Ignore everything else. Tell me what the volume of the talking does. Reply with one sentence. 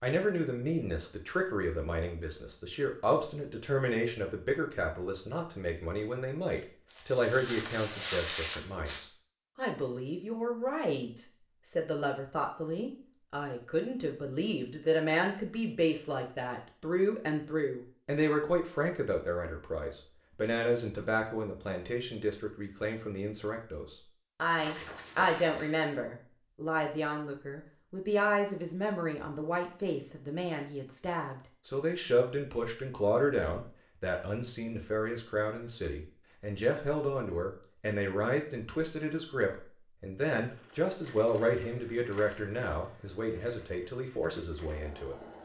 The volume of the talking stays about the same.